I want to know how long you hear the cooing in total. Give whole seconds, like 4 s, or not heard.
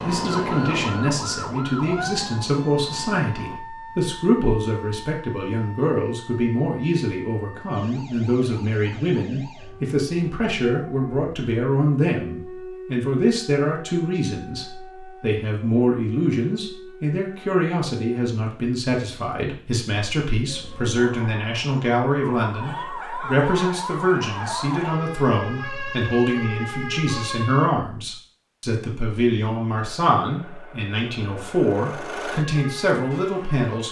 not heard.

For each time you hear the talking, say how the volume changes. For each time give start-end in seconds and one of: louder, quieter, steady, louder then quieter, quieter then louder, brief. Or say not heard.
0.0-33.8 steady.